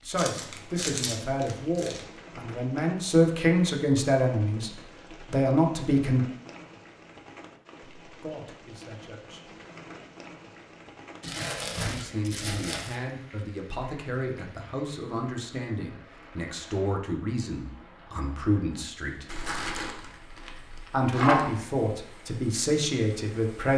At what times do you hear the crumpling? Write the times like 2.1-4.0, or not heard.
0.1-2.0, 11.2-12.9, 19.2-21.5.